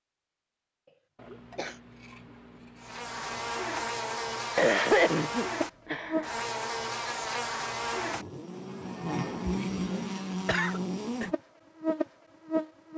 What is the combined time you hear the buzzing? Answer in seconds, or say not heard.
10 s.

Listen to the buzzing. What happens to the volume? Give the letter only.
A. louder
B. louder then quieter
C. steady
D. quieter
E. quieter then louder
C.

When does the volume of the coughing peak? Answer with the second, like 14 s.
5 s.